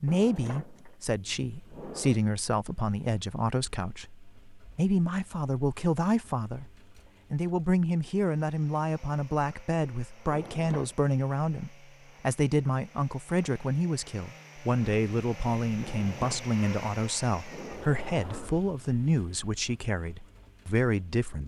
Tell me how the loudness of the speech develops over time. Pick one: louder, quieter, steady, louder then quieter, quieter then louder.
steady.